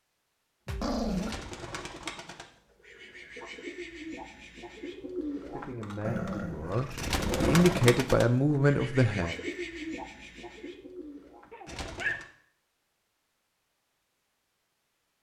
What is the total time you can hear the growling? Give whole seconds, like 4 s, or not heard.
3 s.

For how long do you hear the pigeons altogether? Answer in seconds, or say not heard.
11 s.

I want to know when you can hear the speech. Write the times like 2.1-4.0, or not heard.
5.5-9.3.